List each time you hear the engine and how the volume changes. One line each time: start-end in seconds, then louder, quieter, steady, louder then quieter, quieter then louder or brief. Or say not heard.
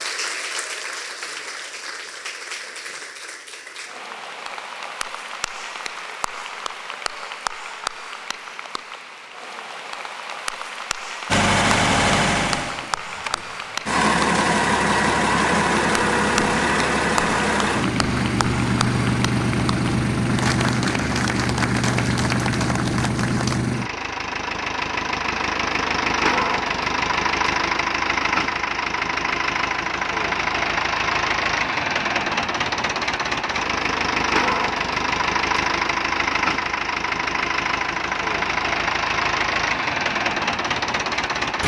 11.3-41.6 steady.